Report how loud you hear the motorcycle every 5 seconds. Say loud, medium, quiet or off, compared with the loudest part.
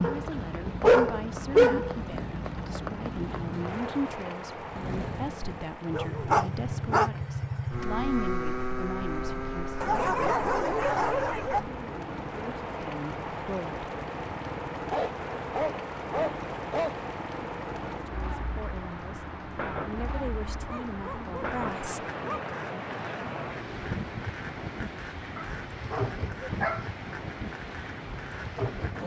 medium, loud, medium, medium, medium, medium.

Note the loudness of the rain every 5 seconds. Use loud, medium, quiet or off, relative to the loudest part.
loud, medium, loud, loud, loud, loud.